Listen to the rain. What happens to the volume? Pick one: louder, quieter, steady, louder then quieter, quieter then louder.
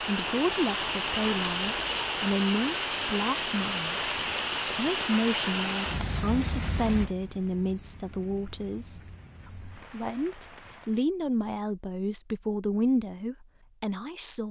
quieter.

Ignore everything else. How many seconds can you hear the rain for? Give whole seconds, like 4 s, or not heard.
11 s.